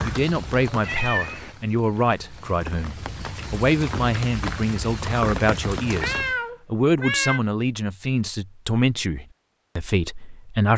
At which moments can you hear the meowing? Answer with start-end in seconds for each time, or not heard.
0.8-1.6, 6.0-7.4.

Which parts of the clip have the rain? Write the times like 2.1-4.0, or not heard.
0.0-6.3.